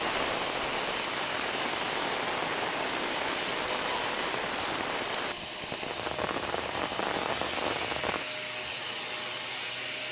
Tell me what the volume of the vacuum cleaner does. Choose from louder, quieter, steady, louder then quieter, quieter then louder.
steady.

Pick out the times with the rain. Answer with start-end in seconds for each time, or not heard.
0.0-8.2.